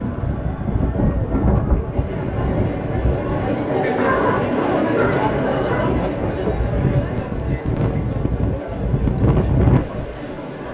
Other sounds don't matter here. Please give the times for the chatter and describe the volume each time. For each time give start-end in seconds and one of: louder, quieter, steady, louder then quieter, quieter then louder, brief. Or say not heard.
0.0-10.6 louder then quieter.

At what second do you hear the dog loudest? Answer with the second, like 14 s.
4 s.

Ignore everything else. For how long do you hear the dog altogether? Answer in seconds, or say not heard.
2 s.